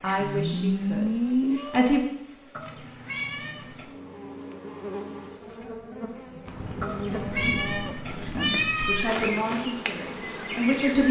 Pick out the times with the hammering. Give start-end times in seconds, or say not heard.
not heard.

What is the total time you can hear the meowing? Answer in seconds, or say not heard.
4 s.